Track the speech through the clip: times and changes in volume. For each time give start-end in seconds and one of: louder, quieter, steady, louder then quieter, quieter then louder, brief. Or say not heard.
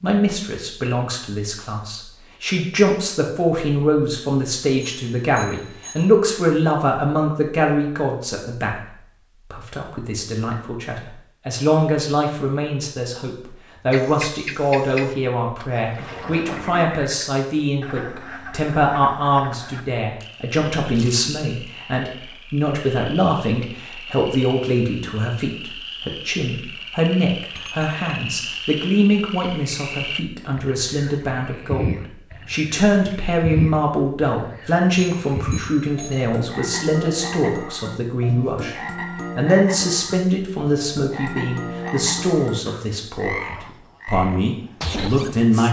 0.0-45.6 steady.